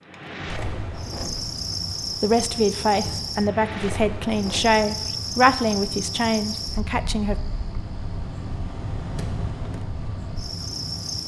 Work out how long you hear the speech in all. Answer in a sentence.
The speech can be heard for 5 seconds in total.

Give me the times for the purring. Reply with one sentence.
The purring can't be heard in this clip.